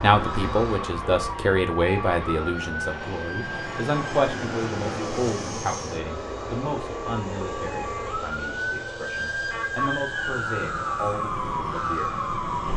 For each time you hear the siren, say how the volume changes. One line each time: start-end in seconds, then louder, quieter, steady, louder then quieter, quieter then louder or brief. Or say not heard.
0.0-12.7 quieter then louder.